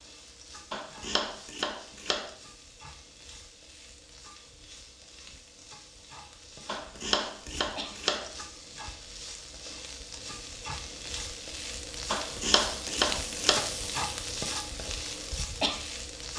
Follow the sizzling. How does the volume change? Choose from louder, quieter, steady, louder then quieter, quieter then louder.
louder.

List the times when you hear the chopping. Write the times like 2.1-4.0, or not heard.
0.7-2.4, 6.7-8.3, 12.1-13.8.